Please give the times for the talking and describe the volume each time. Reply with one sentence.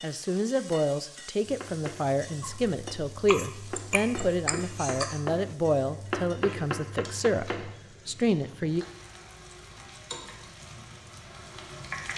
You can hear the talking from 0.0 to 8.8 s, at a steady volume.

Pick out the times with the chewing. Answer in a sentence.
The chewing can be heard from 2.4 to 5.2 s.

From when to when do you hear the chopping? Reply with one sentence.
You can hear the chopping from 1.4 to 7.8 s.